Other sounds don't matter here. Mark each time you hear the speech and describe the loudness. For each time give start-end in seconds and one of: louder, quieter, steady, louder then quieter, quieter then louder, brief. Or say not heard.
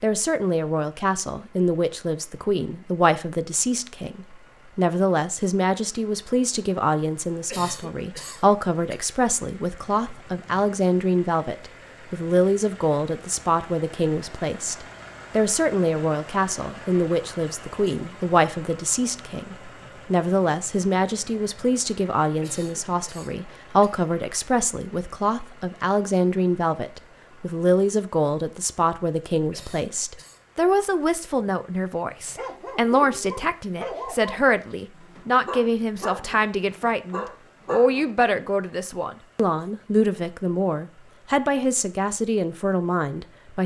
0.0-43.6 steady.